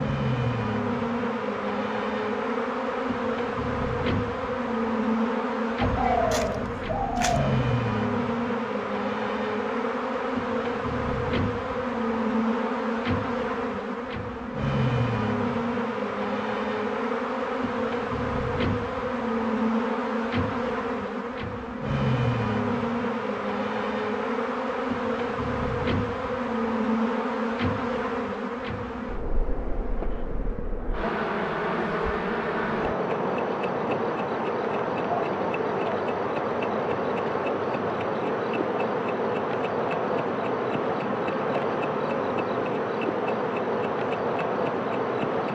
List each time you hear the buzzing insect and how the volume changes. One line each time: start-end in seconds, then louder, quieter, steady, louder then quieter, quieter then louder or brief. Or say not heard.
0.0-45.4 steady.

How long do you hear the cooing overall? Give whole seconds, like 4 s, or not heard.
2 s.